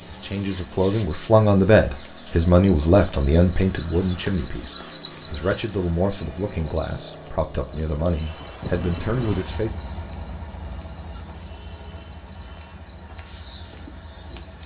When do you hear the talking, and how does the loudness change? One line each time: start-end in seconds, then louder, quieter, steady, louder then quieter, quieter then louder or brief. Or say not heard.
0.1-9.7 quieter.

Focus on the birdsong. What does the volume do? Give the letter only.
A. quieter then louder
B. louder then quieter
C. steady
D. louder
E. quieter
B.